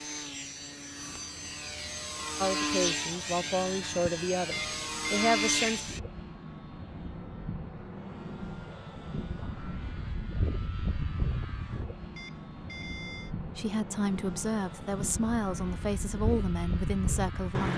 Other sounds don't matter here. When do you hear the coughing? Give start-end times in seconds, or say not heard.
not heard.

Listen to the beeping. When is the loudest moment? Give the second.
5 s.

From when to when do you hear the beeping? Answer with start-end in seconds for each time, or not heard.
4.5-6.0, 12.2-13.3.